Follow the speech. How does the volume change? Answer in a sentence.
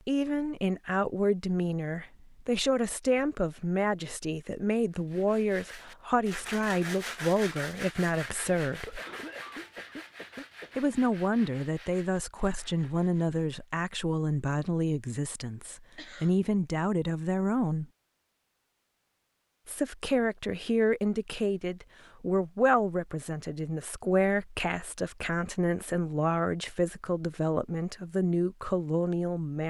The loudness of the speech stays about the same.